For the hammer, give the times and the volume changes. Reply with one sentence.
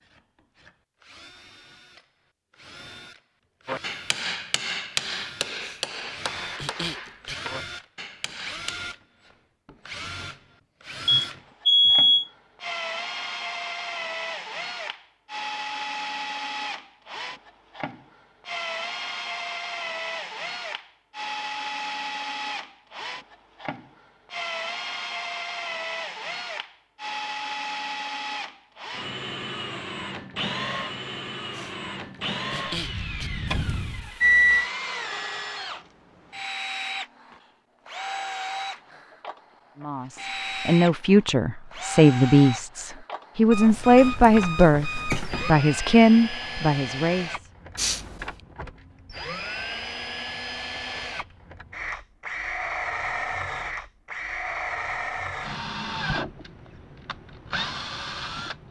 You can hear the hammer from 3.6 to 8.8 s, getting quieter.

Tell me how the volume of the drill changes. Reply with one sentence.
The loudness of the drill goes up.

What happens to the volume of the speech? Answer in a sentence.
The volume of the speech stays about the same.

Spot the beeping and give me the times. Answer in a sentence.
The beeping can be heard from 11.1 to 12.2 s, from 33.5 to 34.7 s and from 43.5 to 45.5 s.